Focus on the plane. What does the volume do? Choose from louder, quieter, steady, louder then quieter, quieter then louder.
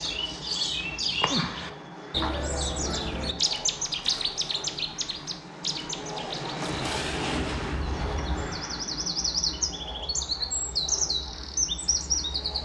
louder then quieter.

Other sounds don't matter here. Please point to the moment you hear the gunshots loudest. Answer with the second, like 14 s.
7 s.